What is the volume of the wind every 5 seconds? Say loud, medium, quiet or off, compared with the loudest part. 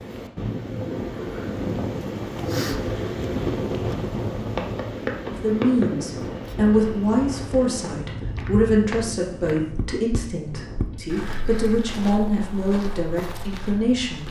loud, medium, quiet.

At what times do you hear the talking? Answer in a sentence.
The talking can be heard from 5.2 to 14.2 s.